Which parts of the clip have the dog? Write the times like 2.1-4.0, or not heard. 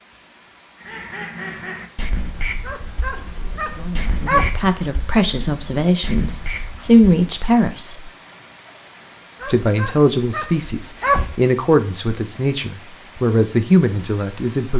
2.6-4.6, 9.4-11.3.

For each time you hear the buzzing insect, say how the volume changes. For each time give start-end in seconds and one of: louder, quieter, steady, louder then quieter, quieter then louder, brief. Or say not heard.
not heard.